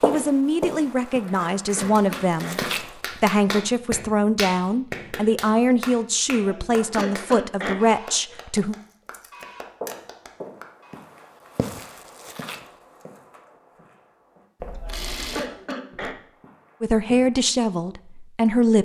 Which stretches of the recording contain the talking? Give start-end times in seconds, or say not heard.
0.0-8.8, 16.8-18.7.